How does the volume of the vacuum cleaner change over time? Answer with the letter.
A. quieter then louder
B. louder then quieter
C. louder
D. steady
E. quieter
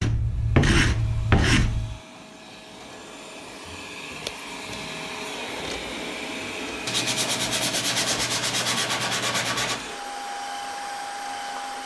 C.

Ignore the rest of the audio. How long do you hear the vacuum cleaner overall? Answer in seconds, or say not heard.
12 s.